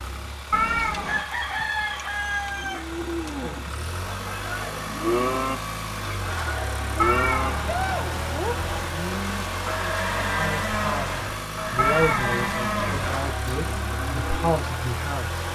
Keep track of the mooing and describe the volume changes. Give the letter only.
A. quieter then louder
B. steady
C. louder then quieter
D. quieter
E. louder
B.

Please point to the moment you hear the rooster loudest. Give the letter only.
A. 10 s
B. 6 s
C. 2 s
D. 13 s
C.